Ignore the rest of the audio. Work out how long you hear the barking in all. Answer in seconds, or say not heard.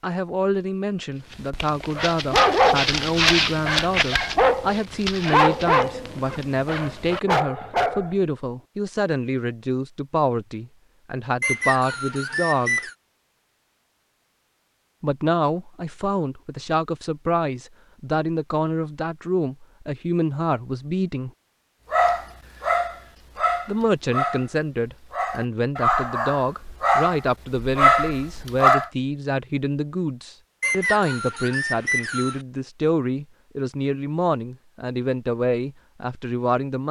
14 s.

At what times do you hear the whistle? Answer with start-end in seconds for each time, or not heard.
11.4-12.9, 30.6-32.4.